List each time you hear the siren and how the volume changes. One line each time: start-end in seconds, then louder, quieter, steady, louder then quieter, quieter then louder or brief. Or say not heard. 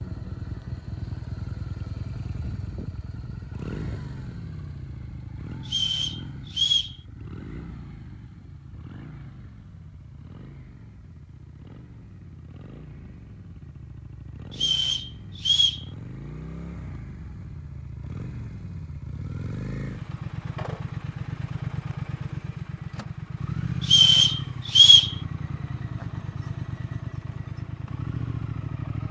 not heard.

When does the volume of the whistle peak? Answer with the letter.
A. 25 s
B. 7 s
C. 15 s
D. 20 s
A.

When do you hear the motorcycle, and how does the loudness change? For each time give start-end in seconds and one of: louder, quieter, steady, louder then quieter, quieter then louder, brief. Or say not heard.
0.0-29.0 quieter then louder.